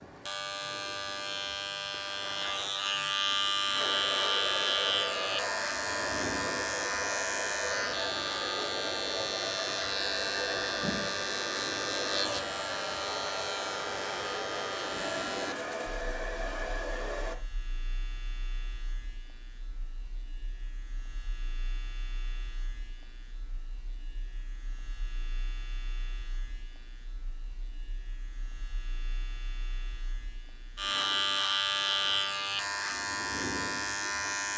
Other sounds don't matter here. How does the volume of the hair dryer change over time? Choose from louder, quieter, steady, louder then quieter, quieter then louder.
steady.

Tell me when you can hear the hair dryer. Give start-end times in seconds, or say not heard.
3.8-17.4.